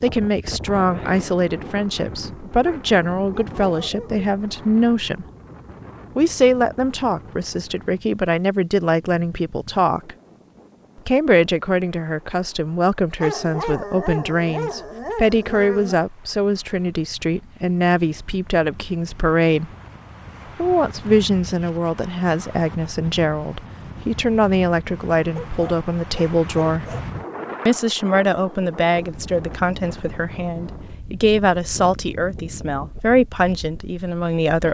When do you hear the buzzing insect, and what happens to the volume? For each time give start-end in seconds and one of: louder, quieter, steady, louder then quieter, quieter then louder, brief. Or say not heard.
not heard.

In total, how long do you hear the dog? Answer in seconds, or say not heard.
6 s.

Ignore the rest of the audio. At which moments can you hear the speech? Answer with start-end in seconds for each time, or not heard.
0.0-5.2, 6.2-10.2, 11.1-19.7, 20.6-26.9, 27.6-34.6.